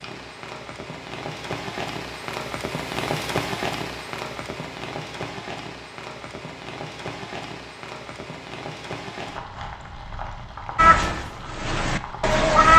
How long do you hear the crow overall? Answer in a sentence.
You can hear the crow for 2 seconds altogether.